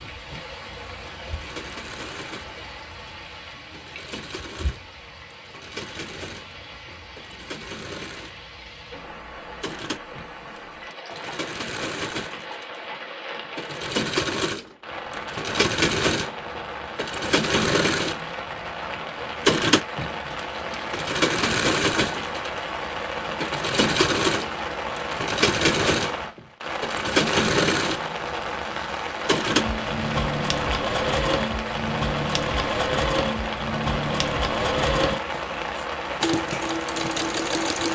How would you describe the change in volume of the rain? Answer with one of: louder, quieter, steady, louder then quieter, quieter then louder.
louder.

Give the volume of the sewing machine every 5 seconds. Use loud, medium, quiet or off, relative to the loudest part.
quiet, quiet, medium, loud, loud, loud, loud, loud.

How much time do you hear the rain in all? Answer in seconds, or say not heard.
38 s.